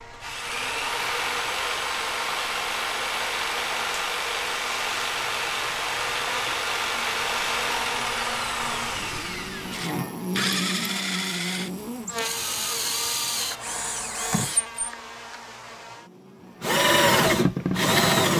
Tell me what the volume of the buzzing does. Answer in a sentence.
The volume of the buzzing goes up, then down.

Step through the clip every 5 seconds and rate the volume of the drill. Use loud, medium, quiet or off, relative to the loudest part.
medium, medium, medium, loud.